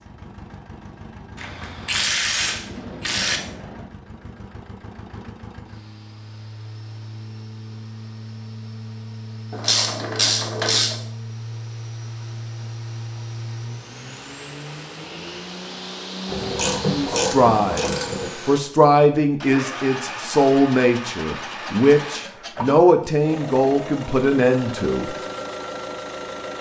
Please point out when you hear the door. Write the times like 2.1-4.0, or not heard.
2.4-3.9.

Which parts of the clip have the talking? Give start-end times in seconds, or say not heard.
16.9-25.1.